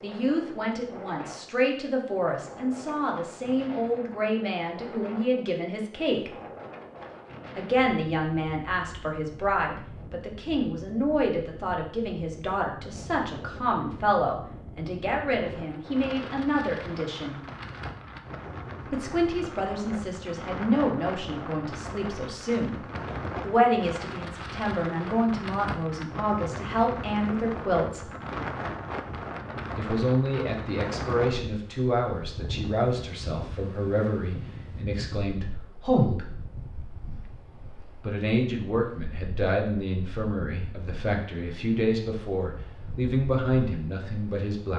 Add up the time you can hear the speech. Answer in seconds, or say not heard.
39 s.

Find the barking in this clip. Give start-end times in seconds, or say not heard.
not heard.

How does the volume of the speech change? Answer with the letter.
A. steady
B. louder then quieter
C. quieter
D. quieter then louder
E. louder
A.